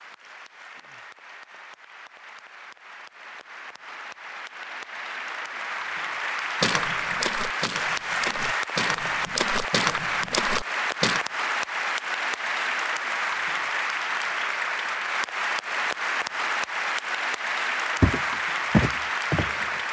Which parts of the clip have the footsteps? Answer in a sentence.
You can hear the footsteps from 6.6 to 11.2 s and from 18.0 to 19.8 s.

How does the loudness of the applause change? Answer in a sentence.
The loudness of the applause goes up.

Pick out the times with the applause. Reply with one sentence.
You can hear the applause from 0.0 to 19.8 s.